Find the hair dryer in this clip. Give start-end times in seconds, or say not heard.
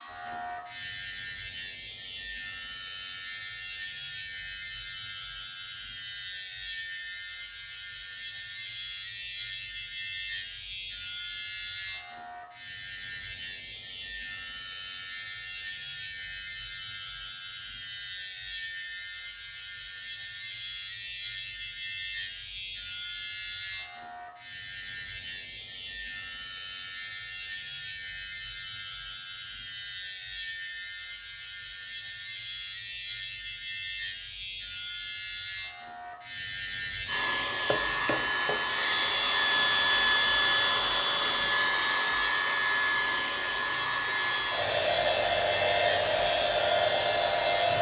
37.0-47.7.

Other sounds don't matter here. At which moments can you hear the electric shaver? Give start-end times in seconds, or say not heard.
0.0-47.7.